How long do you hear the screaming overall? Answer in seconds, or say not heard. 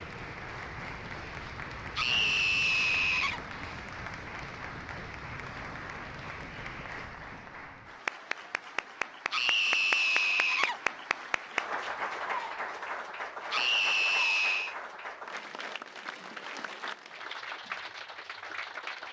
4 s.